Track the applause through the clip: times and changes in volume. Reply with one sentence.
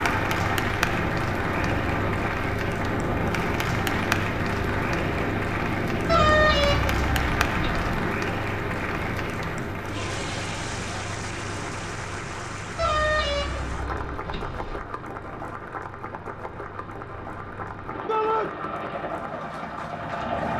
The applause can be heard from 0.0 to 20.5 s, getting quieter.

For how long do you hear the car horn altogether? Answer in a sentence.
You can hear the car horn for 4 seconds altogether.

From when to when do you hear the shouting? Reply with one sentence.
You can hear the shouting from 18.1 to 18.5 s.